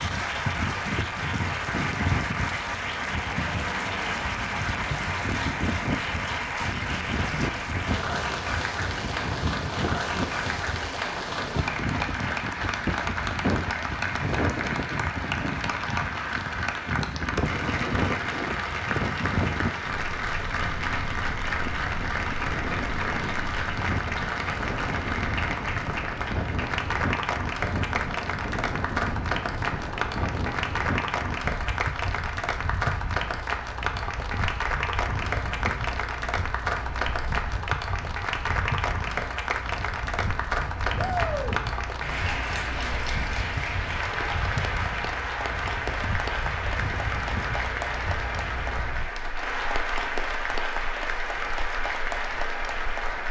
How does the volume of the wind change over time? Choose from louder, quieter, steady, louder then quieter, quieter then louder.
quieter.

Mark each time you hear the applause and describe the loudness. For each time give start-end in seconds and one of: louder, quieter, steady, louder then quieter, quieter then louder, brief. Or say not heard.
0.0-53.2 steady.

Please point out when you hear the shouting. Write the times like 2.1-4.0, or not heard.
41.0-41.5.